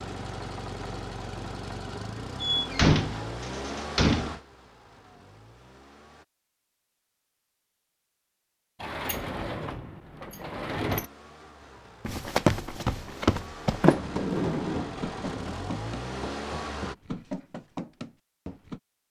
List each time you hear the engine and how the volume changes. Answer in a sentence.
You can hear the engine from 0.0 to 6.2 s, getting quieter; and from 10.8 to 16.9 s, getting louder.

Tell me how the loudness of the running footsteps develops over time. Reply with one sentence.
The loudness of the running footsteps goes down.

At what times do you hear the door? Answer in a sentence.
The door can be heard from 2.4 to 4.3 s, from 8.8 to 11.1 s and from 13.8 to 14.9 s.